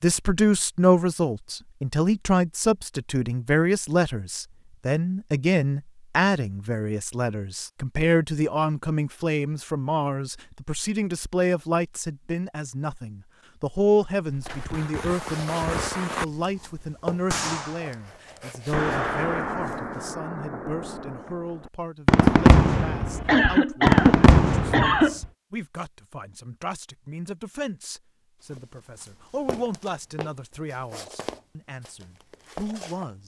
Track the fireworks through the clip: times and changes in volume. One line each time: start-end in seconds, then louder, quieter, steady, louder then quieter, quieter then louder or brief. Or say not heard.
14.5-16.4 brief
17.3-25.2 quieter then louder.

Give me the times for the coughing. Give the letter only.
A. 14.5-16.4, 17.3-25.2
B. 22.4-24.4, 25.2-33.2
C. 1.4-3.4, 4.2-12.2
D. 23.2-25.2
D.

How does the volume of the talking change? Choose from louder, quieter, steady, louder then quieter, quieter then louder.
quieter.